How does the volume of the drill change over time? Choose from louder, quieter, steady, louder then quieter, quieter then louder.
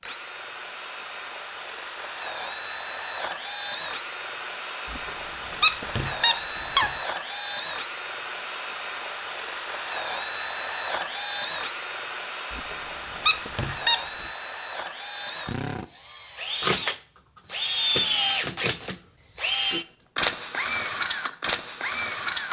louder.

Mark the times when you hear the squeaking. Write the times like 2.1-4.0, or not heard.
4.8-7.0, 12.5-14.2.